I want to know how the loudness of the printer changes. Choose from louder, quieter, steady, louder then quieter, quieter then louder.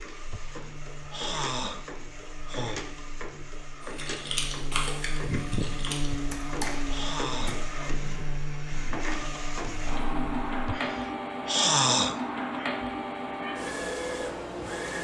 louder.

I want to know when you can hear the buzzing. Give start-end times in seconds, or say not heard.
0.1-10.8.